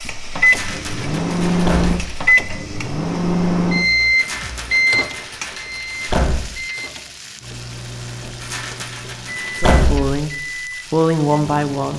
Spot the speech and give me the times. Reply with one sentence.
The speech can be heard from 9.6 to 11.9 s.